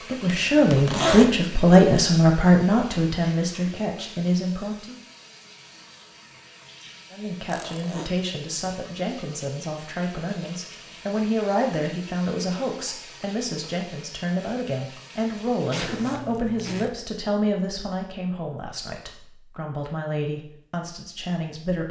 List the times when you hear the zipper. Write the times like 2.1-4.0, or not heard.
0.2-1.4, 7.5-8.1, 15.7-16.9.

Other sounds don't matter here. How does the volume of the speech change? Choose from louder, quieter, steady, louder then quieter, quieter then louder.
quieter.